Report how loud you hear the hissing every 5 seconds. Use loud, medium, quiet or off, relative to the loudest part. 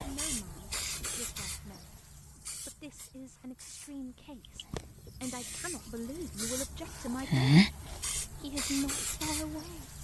quiet, loud.